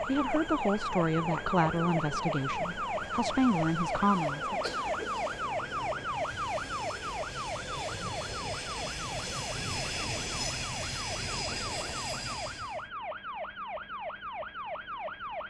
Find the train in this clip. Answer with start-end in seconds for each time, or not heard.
0.0-12.8.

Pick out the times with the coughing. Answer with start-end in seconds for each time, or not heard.
4.6-5.2.